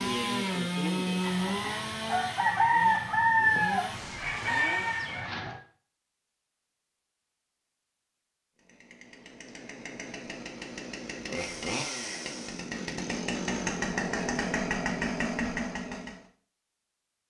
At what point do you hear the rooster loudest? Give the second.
3 s.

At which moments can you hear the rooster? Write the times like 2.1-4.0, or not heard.
1.2-5.6.